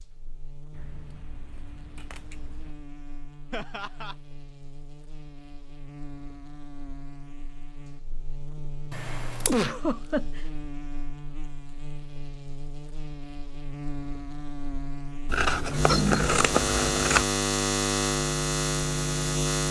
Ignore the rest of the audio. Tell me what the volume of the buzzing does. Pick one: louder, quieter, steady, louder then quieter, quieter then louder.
louder.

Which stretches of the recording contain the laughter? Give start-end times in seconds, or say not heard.
3.5-4.2, 9.4-10.4, 15.8-16.4.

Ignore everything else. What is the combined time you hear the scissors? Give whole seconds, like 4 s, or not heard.
5 s.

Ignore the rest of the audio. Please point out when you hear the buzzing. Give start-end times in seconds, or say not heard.
0.0-19.6.